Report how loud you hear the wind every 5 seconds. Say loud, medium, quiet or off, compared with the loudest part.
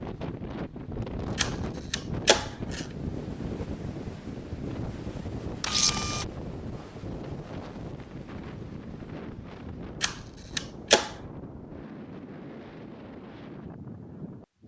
loud, loud, medium.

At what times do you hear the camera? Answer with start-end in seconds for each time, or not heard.
1.4-2.9, 5.6-6.2, 10.0-11.1.